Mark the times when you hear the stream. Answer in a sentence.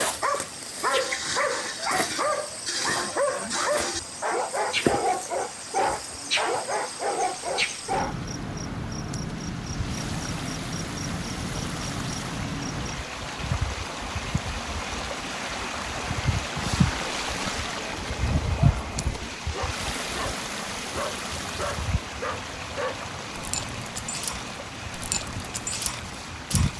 The stream can be heard from 0.0 to 26.7 s.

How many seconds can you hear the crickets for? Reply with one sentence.
The crickets can be heard for 27 seconds in total.